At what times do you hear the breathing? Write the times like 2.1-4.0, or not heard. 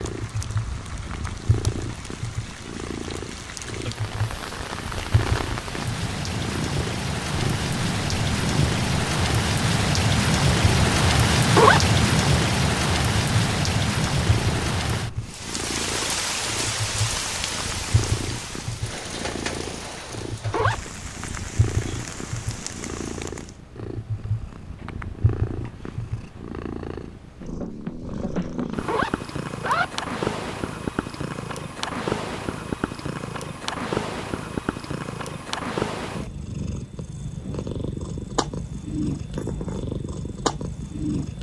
not heard.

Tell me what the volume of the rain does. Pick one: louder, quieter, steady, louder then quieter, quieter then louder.
louder then quieter.